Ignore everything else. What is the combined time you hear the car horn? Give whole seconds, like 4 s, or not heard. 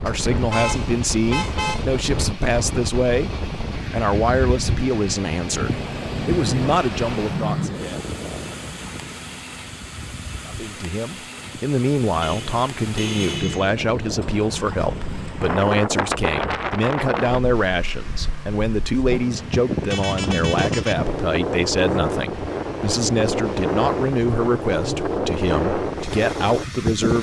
4 s.